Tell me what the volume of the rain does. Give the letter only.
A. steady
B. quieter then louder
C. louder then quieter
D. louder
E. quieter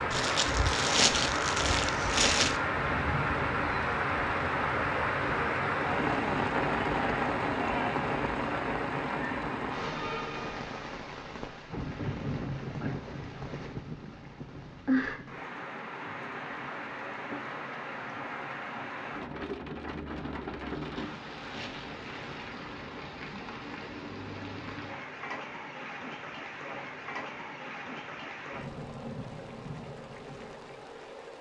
E.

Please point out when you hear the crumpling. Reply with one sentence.
You can hear the crumpling from 0.1 to 2.6 s and from 20.6 to 22.6 s.